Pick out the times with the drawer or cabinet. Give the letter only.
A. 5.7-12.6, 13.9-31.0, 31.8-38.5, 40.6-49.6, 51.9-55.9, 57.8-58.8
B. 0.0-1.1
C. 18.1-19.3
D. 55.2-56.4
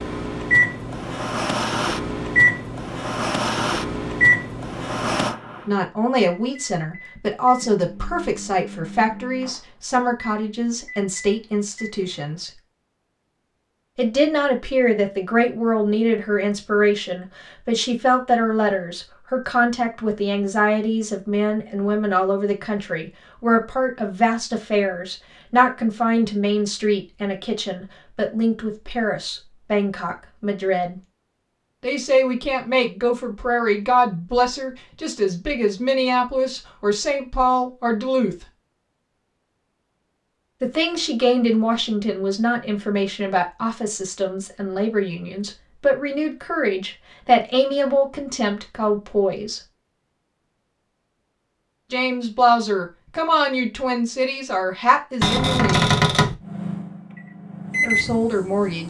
D.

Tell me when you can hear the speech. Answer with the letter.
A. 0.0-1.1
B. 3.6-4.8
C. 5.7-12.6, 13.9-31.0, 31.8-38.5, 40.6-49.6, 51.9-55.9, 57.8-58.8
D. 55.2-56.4
C.